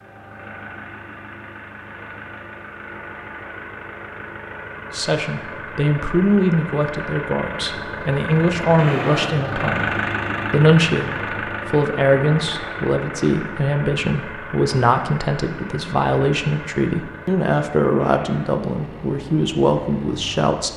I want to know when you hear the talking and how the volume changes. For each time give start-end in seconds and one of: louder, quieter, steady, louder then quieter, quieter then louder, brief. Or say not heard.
4.9-20.7 steady.